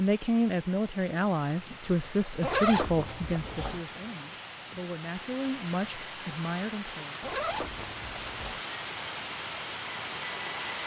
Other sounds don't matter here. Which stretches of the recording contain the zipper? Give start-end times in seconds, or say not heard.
2.4-3.8, 7.2-8.6.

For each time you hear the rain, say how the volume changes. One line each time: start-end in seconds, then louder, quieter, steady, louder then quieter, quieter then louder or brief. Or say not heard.
0.0-10.8 louder.